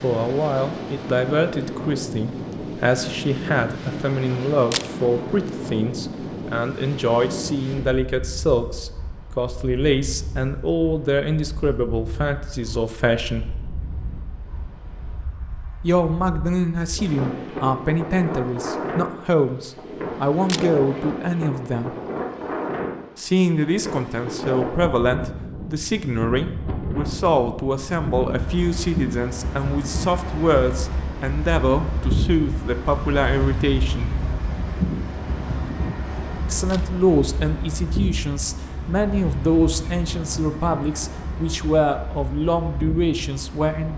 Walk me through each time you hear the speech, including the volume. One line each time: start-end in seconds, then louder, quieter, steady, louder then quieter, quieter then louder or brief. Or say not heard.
0.0-13.4 steady
15.8-21.9 steady
23.1-34.1 steady
36.5-43.9 steady.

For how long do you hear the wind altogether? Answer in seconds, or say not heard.
44 s.